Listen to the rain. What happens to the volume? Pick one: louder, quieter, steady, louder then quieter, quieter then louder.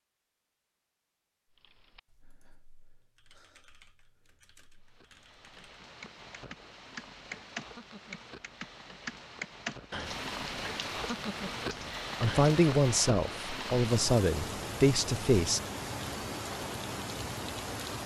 louder.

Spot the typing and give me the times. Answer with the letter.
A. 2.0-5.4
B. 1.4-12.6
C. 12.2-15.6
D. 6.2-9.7
B.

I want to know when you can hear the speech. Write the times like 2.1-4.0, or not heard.
12.2-15.6.